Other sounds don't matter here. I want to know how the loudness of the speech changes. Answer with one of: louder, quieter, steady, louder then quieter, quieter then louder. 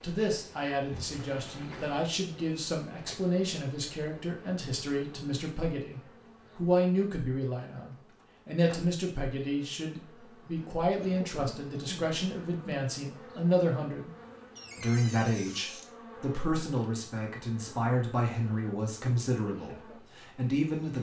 steady.